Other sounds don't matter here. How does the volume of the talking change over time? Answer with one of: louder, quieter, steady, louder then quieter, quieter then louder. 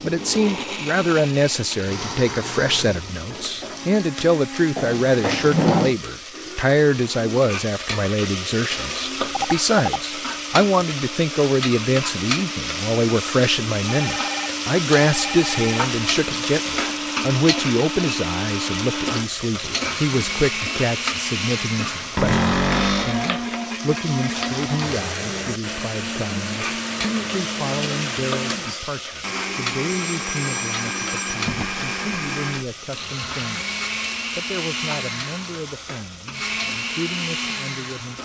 quieter.